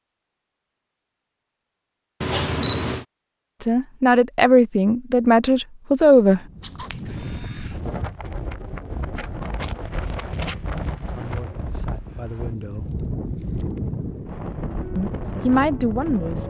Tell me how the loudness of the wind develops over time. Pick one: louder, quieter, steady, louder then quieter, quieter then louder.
steady.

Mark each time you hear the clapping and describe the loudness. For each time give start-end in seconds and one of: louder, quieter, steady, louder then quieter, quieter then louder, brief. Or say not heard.
not heard.